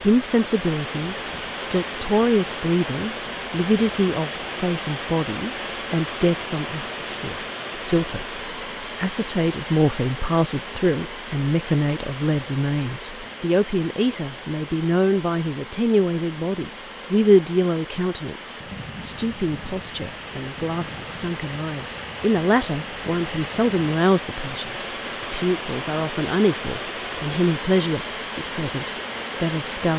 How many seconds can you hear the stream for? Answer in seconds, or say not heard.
30 s.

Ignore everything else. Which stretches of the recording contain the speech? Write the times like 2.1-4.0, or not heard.
0.0-29.9.